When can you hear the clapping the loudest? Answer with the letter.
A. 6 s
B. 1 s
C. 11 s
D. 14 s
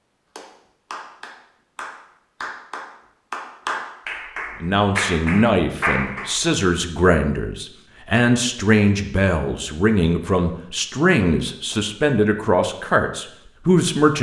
A.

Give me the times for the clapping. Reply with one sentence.
You can hear the clapping from 0.3 to 6.4 s.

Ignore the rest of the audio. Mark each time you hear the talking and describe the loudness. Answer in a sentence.
You can hear the talking from 4.6 to 14.1 s, at a steady volume.